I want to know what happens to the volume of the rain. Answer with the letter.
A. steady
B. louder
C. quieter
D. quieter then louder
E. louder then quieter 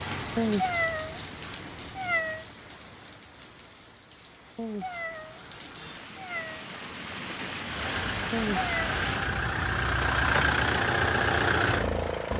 D.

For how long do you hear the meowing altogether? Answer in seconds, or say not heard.
5 s.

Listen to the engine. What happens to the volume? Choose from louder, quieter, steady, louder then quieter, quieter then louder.
louder.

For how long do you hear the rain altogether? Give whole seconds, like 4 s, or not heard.
9 s.